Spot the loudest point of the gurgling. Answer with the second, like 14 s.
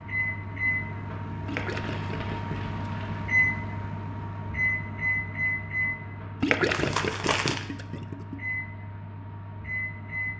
7 s.